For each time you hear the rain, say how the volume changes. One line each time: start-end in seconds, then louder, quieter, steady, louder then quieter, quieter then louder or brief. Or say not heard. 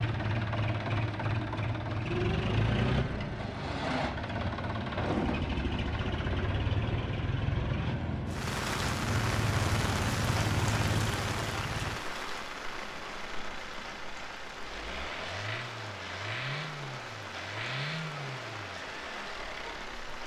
8.2-20.2 quieter.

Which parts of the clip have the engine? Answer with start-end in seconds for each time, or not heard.
0.0-20.2.